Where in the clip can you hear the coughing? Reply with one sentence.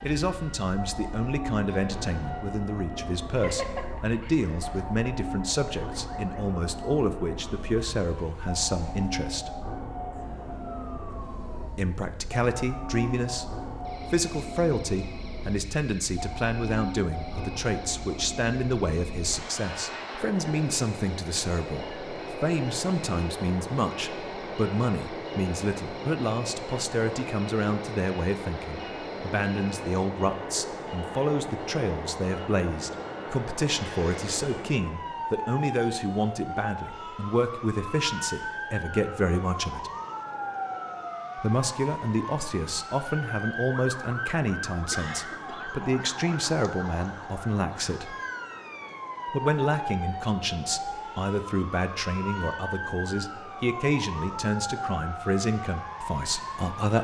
You can hear the coughing from 3.4 to 4.8 s and from 44.9 to 45.7 s.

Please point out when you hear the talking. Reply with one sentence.
The talking can be heard from 0.0 to 9.5 s, from 11.8 to 13.4 s, from 14.1 to 39.9 s, from 41.4 to 48.1 s and from 49.3 to 56.9 s.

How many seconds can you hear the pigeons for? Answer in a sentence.
You can't hear the pigeons here.